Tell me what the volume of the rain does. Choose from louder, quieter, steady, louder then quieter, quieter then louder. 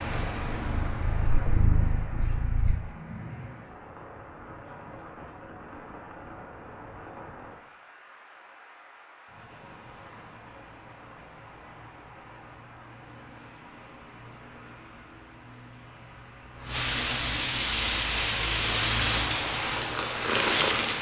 quieter then louder.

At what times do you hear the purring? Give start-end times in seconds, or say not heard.
0.0-2.8, 17.9-20.9.